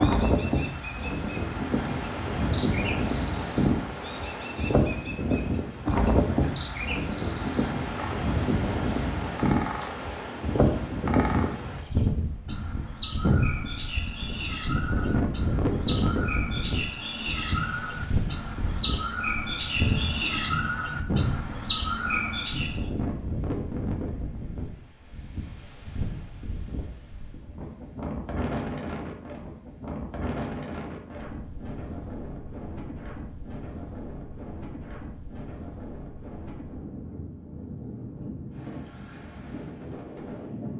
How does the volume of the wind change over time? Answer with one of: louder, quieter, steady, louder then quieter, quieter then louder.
quieter.